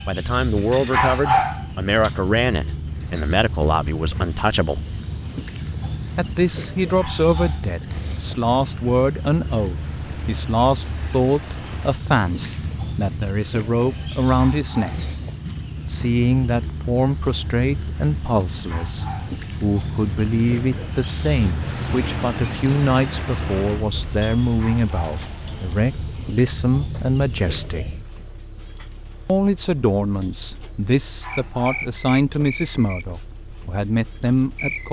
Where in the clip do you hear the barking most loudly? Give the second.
1 s.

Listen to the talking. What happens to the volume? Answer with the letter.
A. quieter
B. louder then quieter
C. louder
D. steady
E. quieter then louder
D.